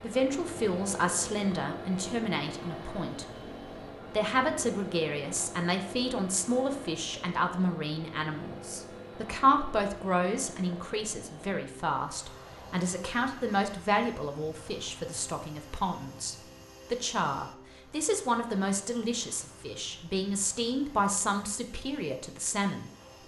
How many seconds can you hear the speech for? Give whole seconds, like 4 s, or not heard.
22 s.